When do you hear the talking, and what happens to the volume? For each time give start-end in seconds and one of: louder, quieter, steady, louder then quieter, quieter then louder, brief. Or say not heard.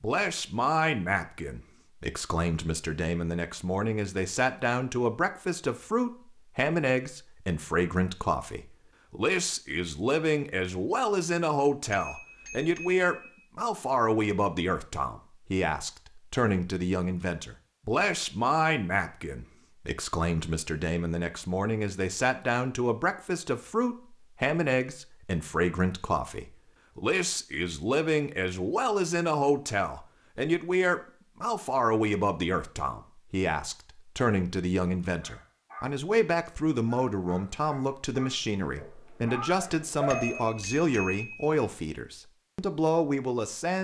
0.0-43.7 steady.